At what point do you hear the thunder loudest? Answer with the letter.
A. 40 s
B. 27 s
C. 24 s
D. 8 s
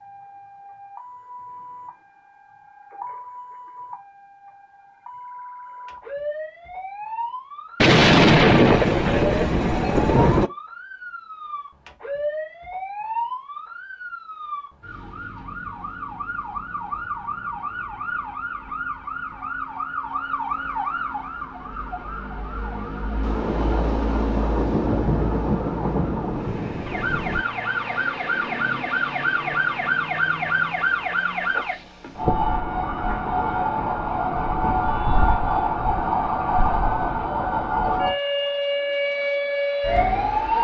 D.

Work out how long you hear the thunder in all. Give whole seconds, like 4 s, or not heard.
7 s.